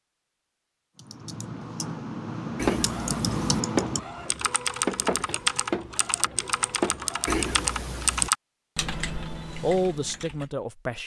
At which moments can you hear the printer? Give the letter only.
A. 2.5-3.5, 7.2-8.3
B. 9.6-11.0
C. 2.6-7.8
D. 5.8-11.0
C.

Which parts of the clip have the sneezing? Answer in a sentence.
The sneezing can be heard from 2.5 to 3.5 s and from 7.2 to 8.3 s.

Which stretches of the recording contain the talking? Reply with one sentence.
The talking can be heard from 9.6 to 11.0 s.